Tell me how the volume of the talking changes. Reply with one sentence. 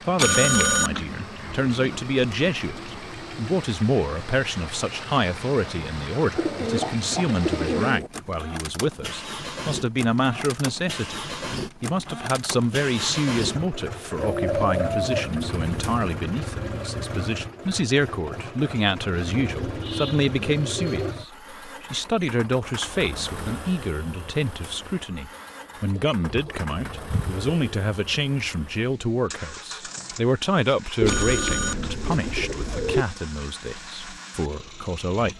The volume of the talking stays about the same.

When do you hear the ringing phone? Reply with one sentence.
You can hear the ringing phone from 0.1 to 2.0 s and from 31.1 to 32.0 s.